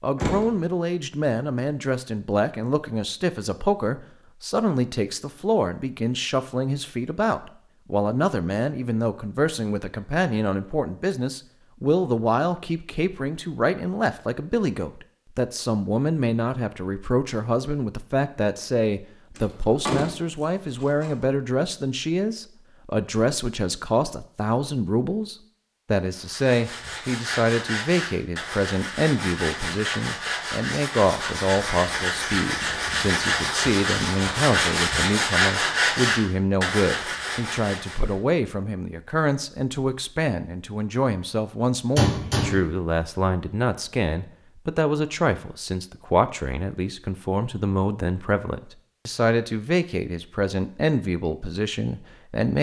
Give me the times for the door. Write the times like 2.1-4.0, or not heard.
0.1-0.6, 19.4-21.1, 42.0-42.6.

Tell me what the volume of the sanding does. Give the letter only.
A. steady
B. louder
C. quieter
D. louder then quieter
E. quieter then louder
B.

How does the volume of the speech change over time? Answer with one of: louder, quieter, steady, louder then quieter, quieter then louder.
steady.